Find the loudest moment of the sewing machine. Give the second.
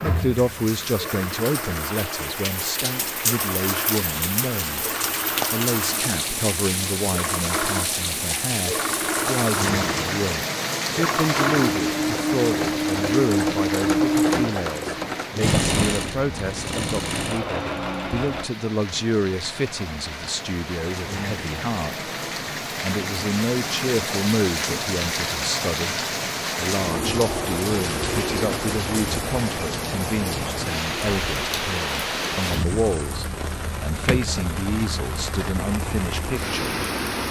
14 s.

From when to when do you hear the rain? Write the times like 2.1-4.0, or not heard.
0.0-37.2.